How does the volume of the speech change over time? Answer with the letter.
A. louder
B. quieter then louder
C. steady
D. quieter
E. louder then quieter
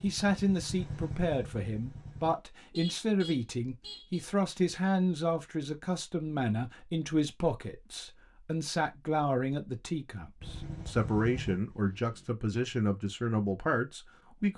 C.